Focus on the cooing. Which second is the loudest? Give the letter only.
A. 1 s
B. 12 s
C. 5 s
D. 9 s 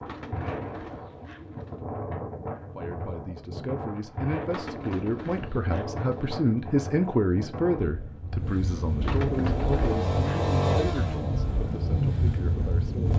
D.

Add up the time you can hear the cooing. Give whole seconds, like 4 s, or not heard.
5 s.